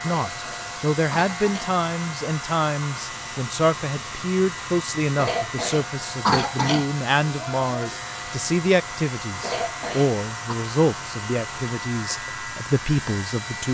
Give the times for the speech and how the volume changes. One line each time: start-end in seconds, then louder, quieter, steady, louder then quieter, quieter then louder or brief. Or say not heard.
0.0-13.6 steady.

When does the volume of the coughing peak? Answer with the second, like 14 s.
6 s.